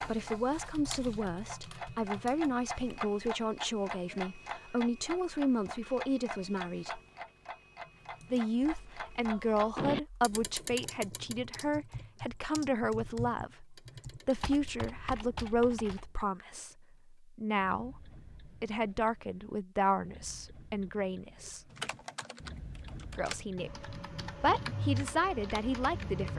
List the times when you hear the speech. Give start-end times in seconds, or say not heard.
0.1-7.0, 8.3-21.6, 23.1-26.3.